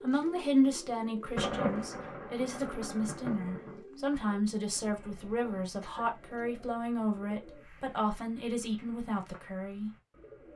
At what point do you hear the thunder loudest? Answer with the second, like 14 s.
2 s.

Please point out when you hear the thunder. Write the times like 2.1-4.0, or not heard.
1.4-3.8.